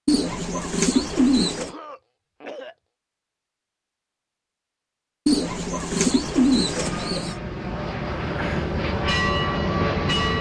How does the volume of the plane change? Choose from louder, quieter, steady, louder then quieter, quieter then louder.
louder.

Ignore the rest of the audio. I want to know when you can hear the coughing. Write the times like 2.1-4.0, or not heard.
0.9-2.8, 8.1-8.8.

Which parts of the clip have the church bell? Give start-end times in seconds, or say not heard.
8.8-10.3.